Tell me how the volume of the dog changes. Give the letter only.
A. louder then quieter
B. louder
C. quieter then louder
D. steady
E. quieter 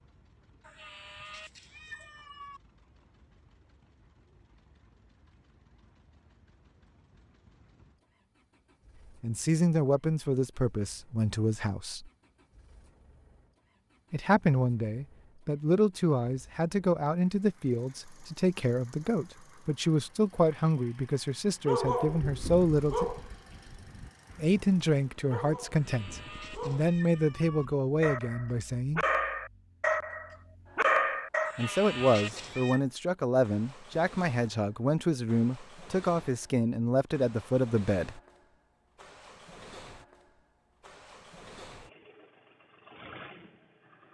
C.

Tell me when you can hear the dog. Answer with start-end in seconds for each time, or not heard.
21.6-31.6.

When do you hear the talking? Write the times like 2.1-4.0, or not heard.
9.2-12.1, 14.1-23.1, 24.4-29.1, 31.6-38.2.